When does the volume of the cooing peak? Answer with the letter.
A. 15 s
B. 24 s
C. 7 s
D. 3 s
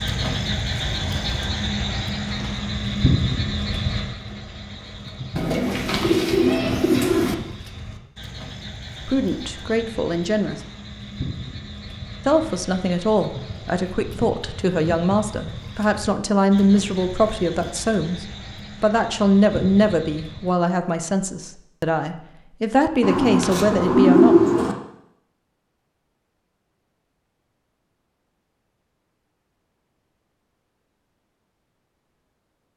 B.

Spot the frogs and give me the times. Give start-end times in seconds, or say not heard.
0.0-20.6.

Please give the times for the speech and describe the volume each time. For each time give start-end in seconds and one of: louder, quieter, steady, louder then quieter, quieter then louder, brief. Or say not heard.
9.1-10.6 brief
12.2-24.4 steady.